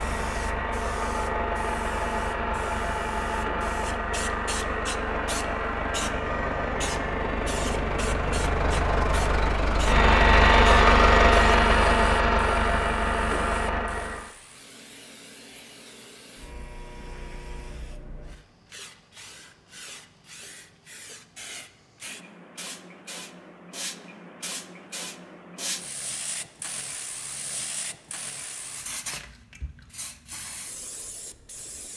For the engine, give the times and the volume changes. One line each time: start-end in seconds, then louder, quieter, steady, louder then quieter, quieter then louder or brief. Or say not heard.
0.0-14.3 louder.